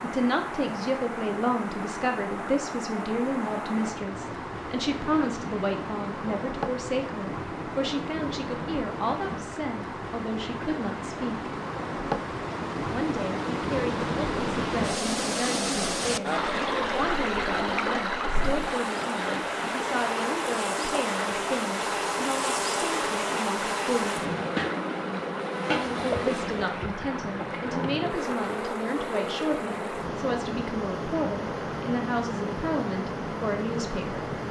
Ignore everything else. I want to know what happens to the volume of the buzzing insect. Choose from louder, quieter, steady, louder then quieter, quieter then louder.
louder then quieter.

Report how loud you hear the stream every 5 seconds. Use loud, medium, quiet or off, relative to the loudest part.
medium, medium, loud, loud, medium, medium, medium.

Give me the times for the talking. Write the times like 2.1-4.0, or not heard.
0.0-11.5, 12.9-24.2, 26.2-34.2.